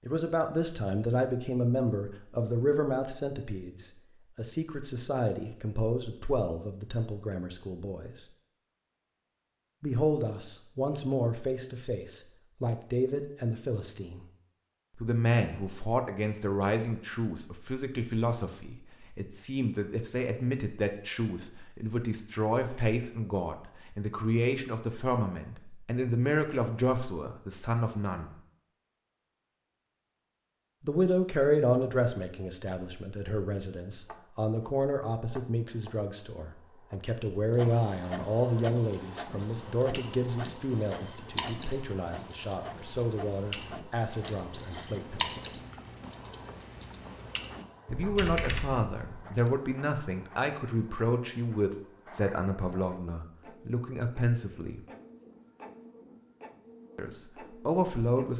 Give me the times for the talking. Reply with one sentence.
You can hear the talking from 0.1 to 8.2 s, from 9.8 to 14.2 s, from 14.9 to 28.3 s, from 30.8 to 45.5 s, from 47.9 to 54.8 s and from 57.0 to 58.3 s.